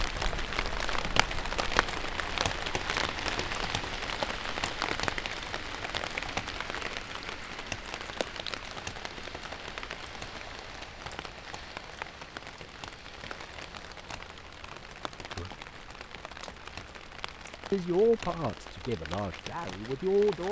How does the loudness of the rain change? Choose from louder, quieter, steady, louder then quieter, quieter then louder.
quieter.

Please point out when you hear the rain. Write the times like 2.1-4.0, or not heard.
0.0-20.4.